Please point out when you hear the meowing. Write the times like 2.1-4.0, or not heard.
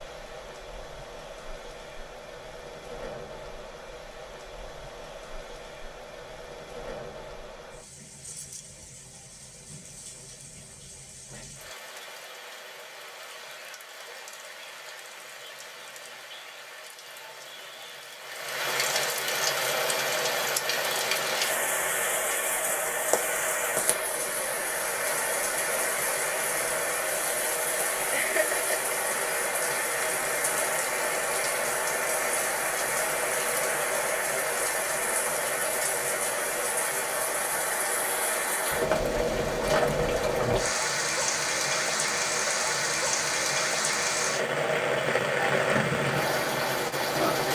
not heard.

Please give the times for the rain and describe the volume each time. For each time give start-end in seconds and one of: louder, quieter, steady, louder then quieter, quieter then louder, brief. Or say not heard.
0.0-47.5 louder.